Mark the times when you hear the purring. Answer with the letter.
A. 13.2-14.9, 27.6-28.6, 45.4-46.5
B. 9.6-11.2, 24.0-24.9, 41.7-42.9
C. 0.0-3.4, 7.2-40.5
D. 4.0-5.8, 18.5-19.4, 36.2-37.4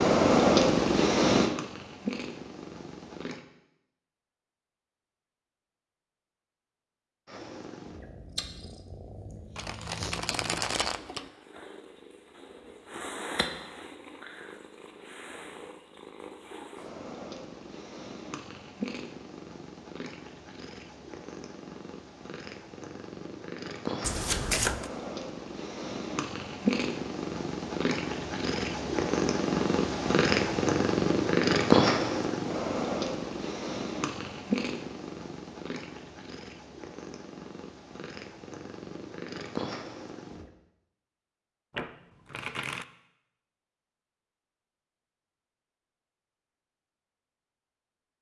C.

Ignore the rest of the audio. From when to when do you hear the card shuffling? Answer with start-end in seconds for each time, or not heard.
9.6-11.2, 24.0-24.9, 41.7-42.9.